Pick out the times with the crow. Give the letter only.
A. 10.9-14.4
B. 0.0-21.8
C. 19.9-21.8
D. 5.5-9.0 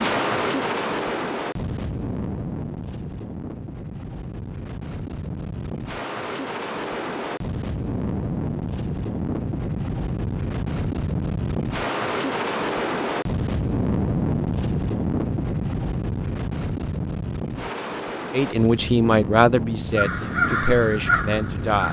C.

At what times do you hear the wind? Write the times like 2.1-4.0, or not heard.
0.0-21.8.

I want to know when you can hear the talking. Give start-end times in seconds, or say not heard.
18.3-21.8.